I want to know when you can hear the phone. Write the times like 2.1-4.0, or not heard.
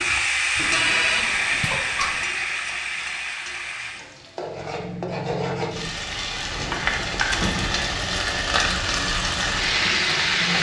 0.6-2.2, 6.5-7.2.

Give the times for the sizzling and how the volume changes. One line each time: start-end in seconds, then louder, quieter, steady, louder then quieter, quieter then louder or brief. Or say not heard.
0.0-10.5 quieter then louder.